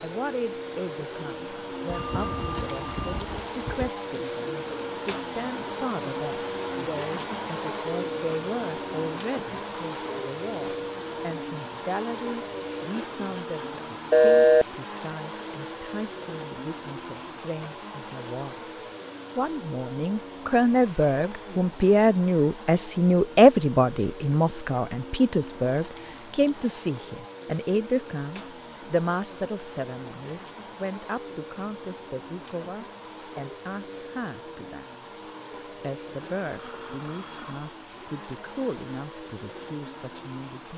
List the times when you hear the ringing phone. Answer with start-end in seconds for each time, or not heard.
1.9-3.9, 14.1-14.7, 36.5-37.8.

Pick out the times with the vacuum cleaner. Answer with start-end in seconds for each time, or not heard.
0.0-40.7.